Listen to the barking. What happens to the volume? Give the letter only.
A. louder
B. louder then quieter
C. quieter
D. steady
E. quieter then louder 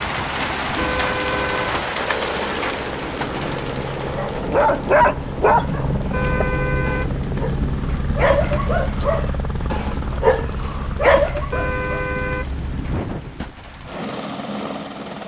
E.